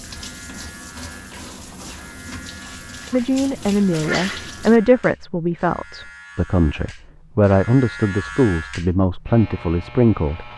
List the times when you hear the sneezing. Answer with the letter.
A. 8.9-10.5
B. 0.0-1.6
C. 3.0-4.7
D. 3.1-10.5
C.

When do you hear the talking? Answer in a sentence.
The talking can be heard from 3.1 to 10.5 s.